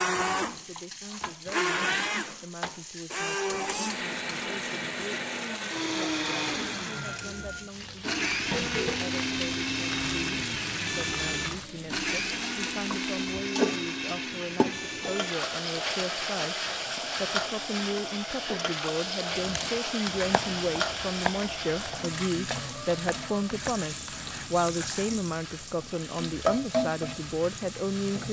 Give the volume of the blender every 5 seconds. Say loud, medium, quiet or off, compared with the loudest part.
loud, loud, loud, medium, quiet, quiet.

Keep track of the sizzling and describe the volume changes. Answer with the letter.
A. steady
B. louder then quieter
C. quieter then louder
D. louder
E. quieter
D.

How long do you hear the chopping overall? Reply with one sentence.
You can hear the chopping for 6 seconds altogether.